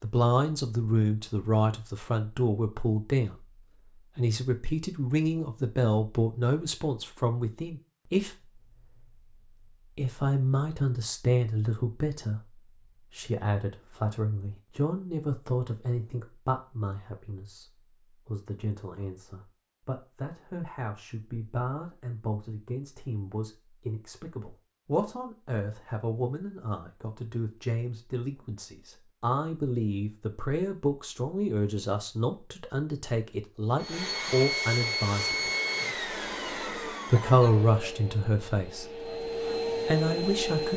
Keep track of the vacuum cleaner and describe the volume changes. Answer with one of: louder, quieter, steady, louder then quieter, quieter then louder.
quieter then louder.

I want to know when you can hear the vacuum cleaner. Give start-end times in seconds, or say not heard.
33.8-40.7.